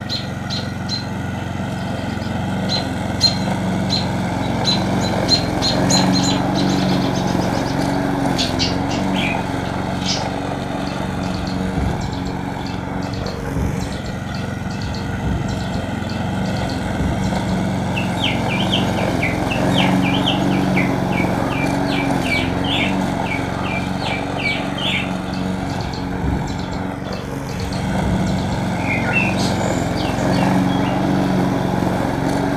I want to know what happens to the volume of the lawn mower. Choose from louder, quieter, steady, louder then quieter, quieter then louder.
steady.